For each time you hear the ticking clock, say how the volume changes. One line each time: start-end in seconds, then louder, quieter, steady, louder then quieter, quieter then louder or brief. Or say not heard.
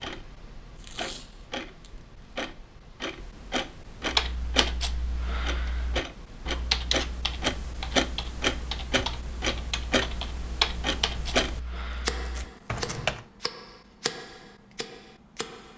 0.0-15.7 louder then quieter.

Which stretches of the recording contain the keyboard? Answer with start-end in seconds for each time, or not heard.
4.0-13.2.